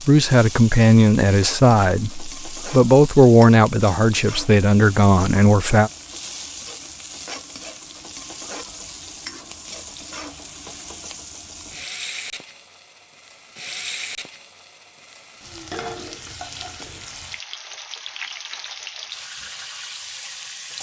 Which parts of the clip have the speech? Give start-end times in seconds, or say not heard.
0.0-5.9.